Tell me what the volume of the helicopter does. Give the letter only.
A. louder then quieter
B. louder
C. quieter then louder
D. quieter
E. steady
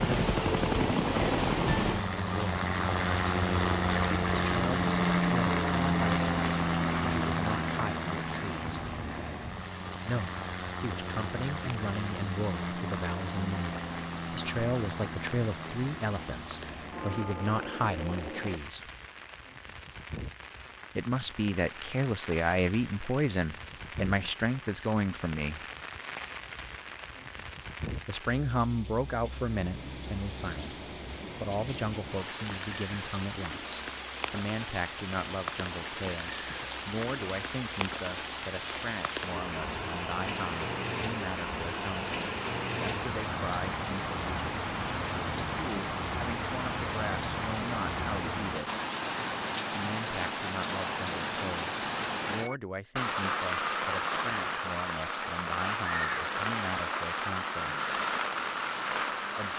D.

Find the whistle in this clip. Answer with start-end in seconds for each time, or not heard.
not heard.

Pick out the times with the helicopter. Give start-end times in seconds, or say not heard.
0.0-18.6.